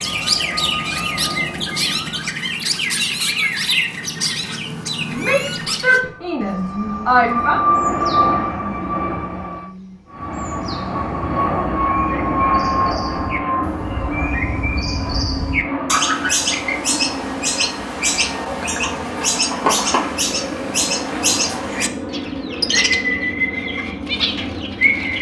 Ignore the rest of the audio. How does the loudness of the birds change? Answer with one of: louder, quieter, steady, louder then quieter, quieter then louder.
quieter then louder.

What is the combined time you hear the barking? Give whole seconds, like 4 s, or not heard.
not heard.